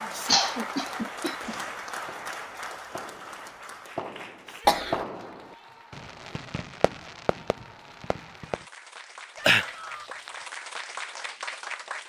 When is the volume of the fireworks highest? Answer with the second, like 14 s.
5 s.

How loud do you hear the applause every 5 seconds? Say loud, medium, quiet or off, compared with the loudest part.
loud, medium, loud.